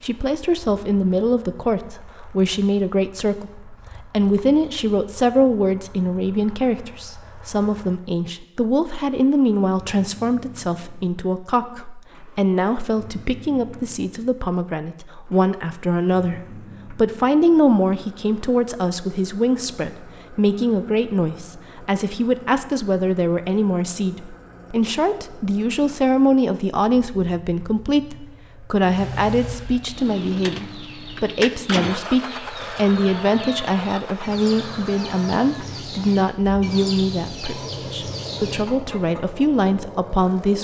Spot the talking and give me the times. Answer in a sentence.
The talking can be heard from 0.0 to 40.5 s.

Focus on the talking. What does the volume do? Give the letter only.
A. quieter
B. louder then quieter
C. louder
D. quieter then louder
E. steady
E.